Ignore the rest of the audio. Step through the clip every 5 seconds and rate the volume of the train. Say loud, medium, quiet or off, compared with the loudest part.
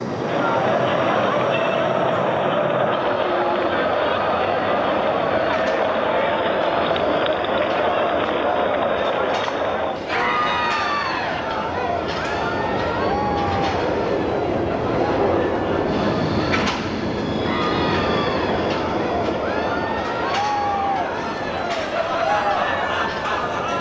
medium, medium, loud, loud, medium.